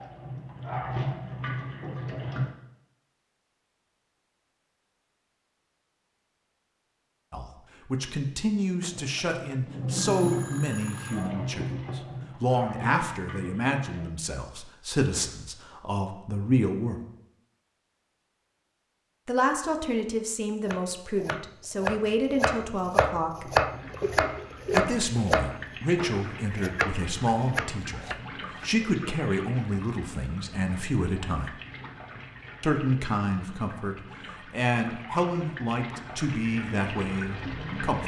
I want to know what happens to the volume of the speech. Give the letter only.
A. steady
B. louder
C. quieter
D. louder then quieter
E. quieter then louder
A.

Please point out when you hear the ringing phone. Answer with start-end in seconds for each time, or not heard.
8.8-11.3, 24.0-24.9.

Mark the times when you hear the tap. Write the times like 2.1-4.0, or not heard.
0.0-2.5, 8.9-14.1, 23.4-38.0.